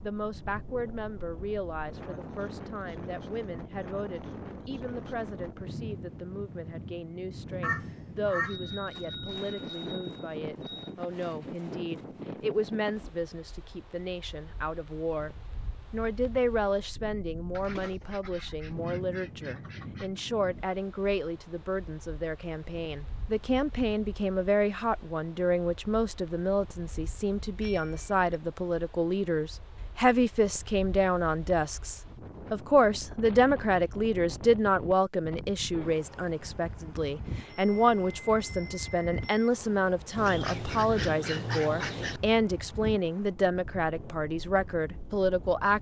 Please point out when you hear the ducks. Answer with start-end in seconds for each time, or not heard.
7.6-9.1, 17.5-20.1, 40.1-42.2.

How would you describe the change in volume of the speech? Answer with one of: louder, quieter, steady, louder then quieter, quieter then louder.
louder.